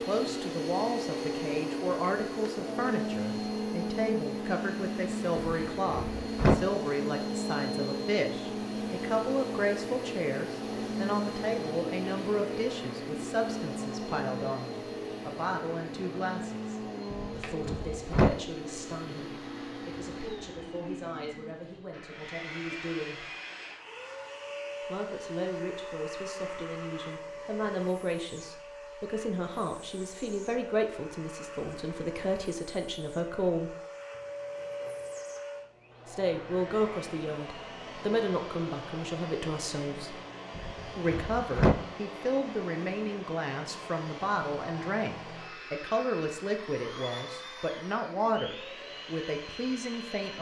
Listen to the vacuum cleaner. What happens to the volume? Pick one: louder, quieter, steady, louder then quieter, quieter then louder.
quieter.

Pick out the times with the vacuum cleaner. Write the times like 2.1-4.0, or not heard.
0.0-50.3.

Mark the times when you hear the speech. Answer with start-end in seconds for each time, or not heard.
0.0-23.2, 24.9-33.8, 36.0-40.1, 41.0-50.3.